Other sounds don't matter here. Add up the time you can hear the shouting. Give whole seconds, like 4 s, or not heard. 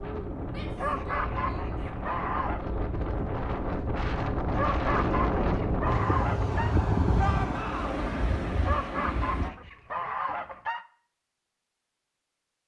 2 s.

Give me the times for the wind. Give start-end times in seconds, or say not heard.
0.0-9.5.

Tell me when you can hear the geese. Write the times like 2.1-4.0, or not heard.
0.8-2.6, 4.5-6.8, 8.6-10.8.